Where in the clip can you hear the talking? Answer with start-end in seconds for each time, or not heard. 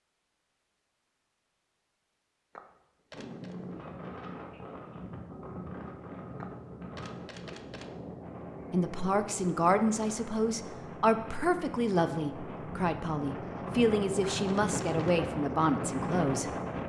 8.7-16.5.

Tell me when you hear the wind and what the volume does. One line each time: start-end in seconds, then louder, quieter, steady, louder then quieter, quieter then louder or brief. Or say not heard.
3.1-16.8 louder.